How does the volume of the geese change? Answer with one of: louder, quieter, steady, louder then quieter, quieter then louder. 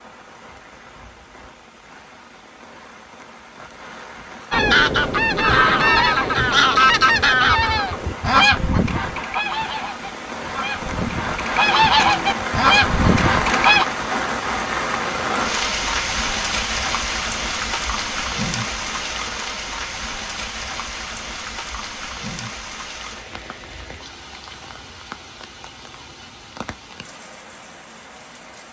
quieter then louder.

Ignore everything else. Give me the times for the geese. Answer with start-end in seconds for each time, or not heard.
4.5-13.8.